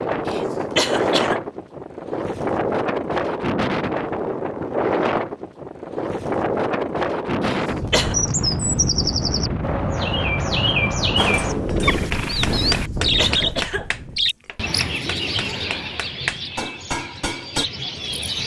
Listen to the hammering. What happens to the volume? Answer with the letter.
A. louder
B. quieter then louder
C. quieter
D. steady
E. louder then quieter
B.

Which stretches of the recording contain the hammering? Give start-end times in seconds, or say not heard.
11.2-17.6.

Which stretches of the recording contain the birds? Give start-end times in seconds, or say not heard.
8.1-18.4.